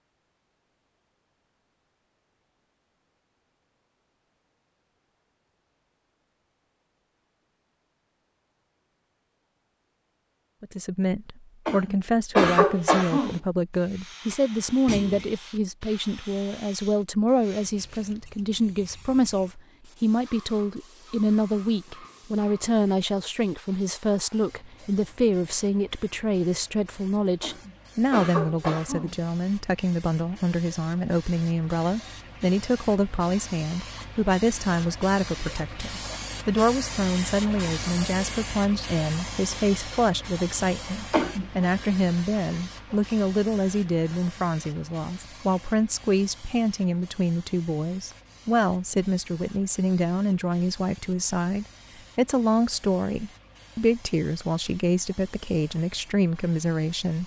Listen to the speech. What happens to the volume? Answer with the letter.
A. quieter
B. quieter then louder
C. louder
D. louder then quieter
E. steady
E.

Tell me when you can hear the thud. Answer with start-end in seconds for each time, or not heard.
14.8-15.3.